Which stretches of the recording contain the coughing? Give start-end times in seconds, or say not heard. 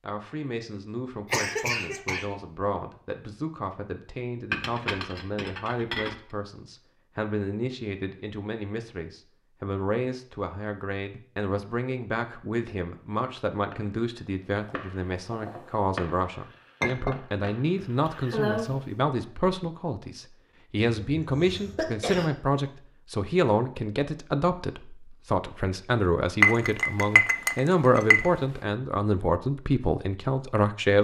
1.3-2.4, 17.8-18.8, 21.0-22.3.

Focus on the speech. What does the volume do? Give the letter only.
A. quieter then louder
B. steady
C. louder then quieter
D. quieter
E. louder
E.